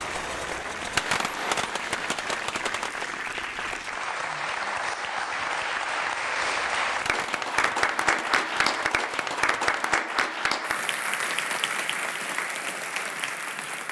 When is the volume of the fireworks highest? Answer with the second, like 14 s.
1 s.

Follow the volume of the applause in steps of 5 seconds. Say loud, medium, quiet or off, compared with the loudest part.
medium, loud, loud.